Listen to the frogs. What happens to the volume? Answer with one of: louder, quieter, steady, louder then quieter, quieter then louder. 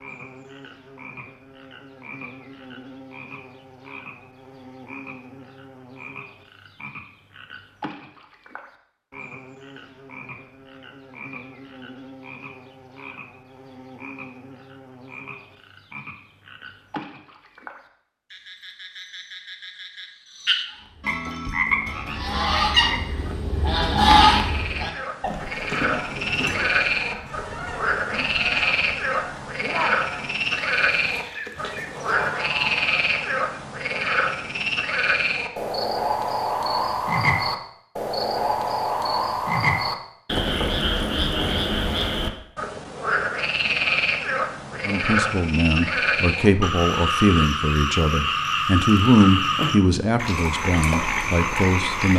louder.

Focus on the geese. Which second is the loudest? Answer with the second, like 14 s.
24 s.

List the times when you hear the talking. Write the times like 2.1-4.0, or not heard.
44.8-52.1.